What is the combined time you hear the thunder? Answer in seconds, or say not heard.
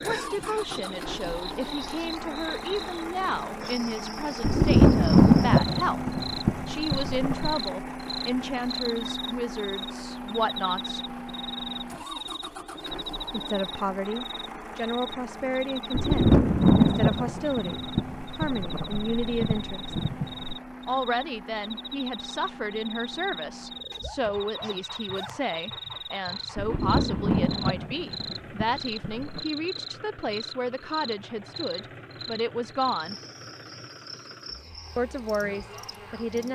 11 s.